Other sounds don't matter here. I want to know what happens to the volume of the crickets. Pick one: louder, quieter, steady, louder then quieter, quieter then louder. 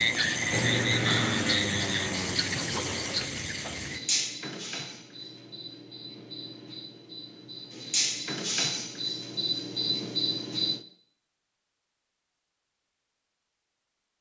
quieter then louder.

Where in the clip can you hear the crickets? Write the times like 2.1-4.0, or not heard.
0.0-10.8.